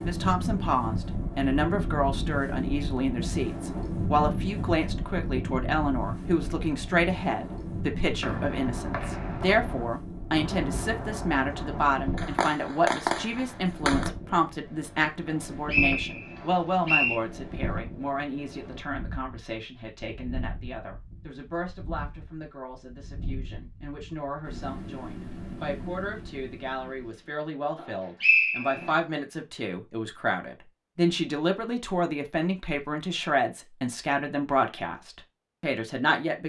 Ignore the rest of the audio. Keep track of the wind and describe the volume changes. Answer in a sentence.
The loudness of the wind goes down.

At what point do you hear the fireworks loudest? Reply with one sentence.
The volume of the fireworks peaks at 13 seconds.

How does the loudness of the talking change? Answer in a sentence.
The loudness of the talking goes down, then up.